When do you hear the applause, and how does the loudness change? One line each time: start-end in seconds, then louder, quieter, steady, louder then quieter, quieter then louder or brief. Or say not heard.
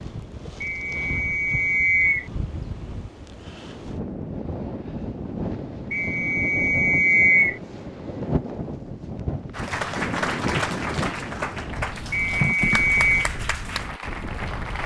9.5-14.8 quieter.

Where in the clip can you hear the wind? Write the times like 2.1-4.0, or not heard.
0.0-14.8.